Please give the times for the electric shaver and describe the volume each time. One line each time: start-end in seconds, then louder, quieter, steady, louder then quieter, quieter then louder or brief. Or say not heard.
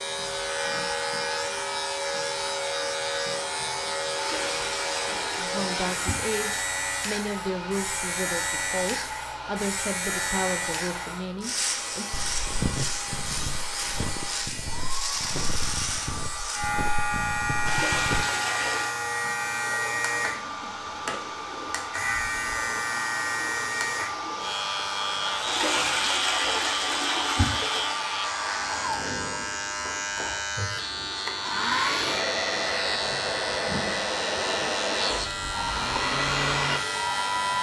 0.0-37.5 steady.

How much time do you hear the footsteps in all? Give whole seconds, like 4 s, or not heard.
6 s.